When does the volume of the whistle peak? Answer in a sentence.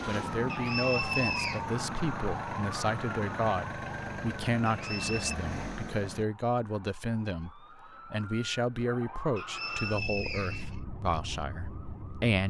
The volume of the whistle peaks at 1 second.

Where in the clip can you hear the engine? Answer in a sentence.
The engine can be heard from 0.0 to 6.2 s.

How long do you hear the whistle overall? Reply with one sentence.
You can hear the whistle for 3 seconds altogether.